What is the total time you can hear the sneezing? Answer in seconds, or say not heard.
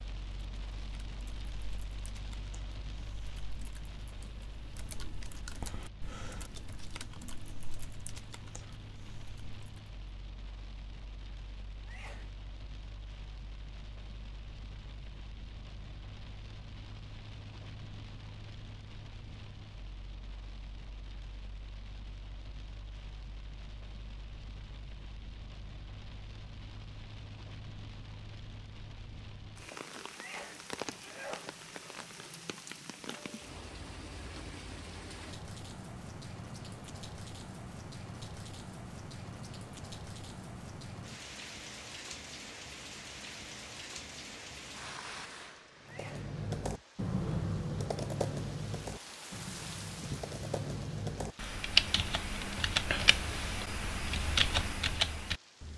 3 s.